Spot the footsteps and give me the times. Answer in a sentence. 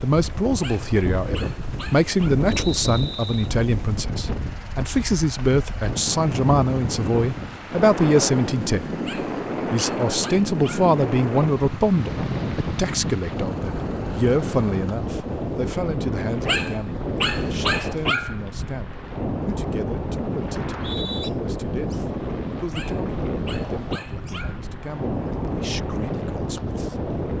The footsteps can't be heard in this clip.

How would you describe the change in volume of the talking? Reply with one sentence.
The loudness of the talking goes down.